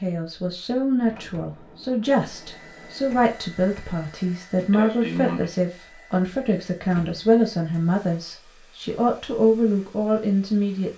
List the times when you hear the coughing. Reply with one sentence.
The coughing can be heard from 4.7 to 5.5 s.